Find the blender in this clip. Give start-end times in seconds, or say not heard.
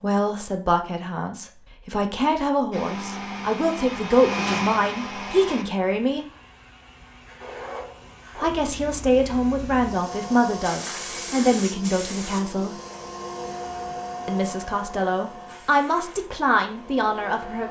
2.7-5.7.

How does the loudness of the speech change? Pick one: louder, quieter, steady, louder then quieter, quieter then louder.
steady.